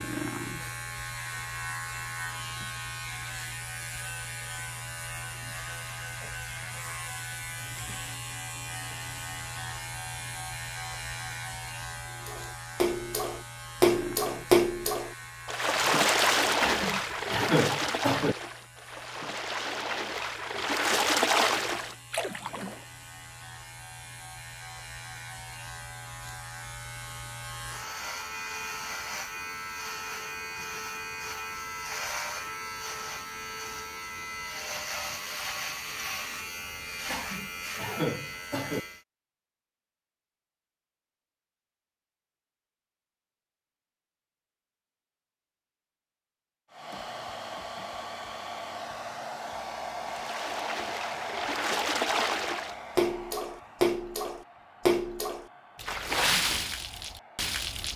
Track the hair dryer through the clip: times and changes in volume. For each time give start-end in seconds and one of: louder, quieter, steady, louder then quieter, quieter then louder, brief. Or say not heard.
46.7-57.9 quieter.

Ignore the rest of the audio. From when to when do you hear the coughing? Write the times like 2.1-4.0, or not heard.
16.6-18.4, 37.0-38.8.